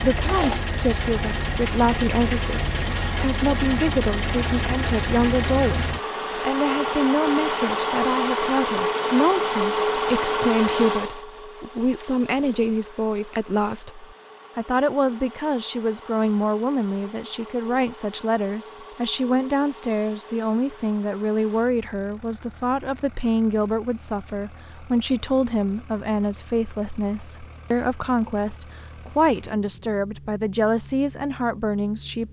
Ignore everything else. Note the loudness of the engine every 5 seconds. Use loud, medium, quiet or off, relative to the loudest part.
loud, loud, medium, quiet, quiet, quiet, quiet.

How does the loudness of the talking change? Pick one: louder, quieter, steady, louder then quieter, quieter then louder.
steady.